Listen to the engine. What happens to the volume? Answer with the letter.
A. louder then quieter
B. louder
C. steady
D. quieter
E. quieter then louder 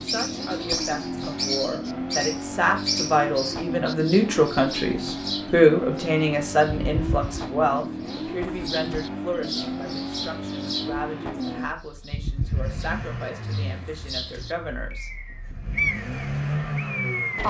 C.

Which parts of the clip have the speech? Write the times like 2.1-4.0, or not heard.
0.0-15.1.